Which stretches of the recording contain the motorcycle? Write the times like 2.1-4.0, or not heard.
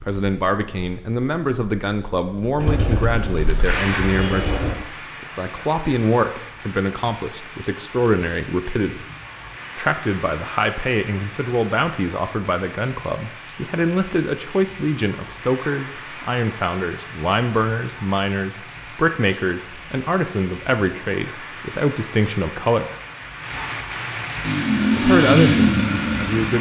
2.5-4.7, 24.4-26.5.